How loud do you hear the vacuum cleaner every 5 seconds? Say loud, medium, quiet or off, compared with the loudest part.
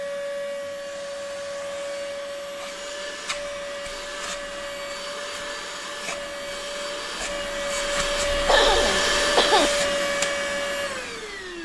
medium, loud, loud.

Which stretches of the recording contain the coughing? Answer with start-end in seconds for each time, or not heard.
8.4-9.7.